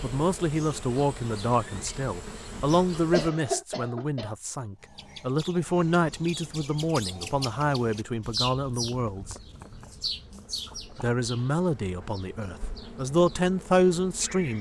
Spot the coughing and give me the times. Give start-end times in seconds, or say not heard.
2.7-4.3.